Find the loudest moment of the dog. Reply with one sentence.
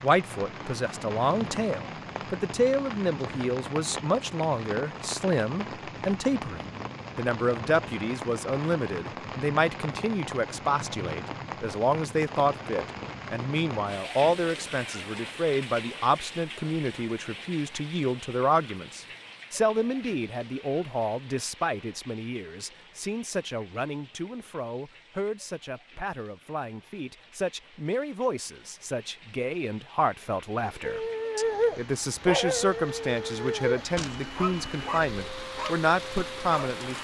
The loudest moment of the dog is at 32 seconds.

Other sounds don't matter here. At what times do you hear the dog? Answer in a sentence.
The dog can be heard from 30.8 to 36.8 s.